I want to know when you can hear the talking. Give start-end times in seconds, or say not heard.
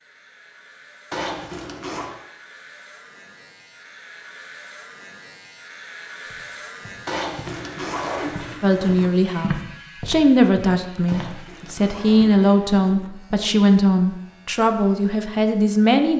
8.6-16.1.